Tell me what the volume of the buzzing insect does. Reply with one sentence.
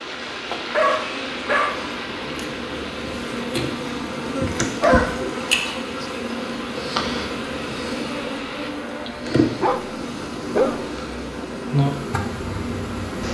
The volume of the buzzing insect goes up.